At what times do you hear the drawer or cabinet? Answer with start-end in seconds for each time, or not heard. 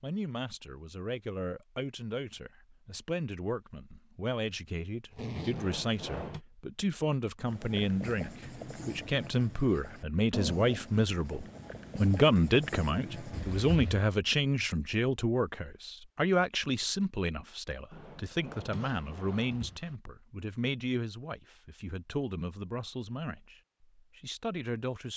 5.5-6.5, 17.9-19.8.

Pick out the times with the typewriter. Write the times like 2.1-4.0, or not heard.
not heard.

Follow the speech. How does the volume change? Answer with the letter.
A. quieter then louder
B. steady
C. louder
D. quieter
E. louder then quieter
E.